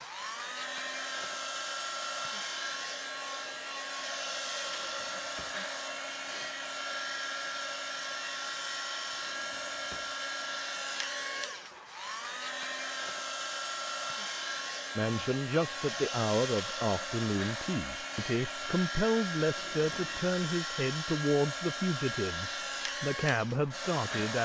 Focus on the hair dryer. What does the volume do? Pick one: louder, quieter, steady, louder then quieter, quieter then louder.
steady.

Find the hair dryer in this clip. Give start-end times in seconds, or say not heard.
0.0-24.4.